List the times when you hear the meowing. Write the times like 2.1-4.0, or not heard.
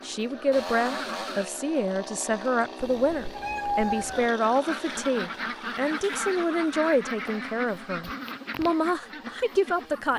2.8-4.3.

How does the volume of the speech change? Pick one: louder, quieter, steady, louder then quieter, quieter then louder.
steady.